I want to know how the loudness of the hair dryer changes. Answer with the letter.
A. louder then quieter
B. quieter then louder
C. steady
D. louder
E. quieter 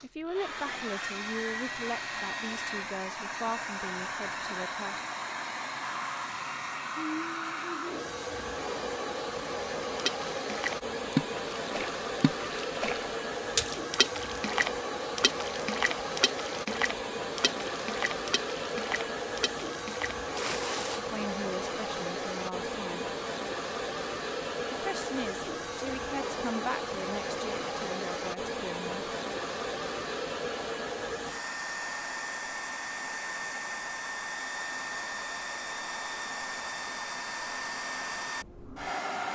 C.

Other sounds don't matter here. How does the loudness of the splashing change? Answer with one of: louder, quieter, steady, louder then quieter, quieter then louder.
quieter.